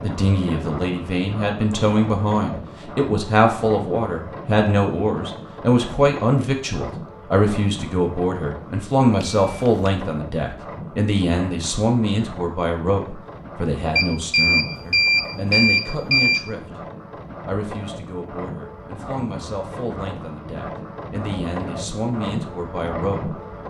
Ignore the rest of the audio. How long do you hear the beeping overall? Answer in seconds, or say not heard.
3 s.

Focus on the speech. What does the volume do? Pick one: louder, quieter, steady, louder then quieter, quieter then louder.
quieter.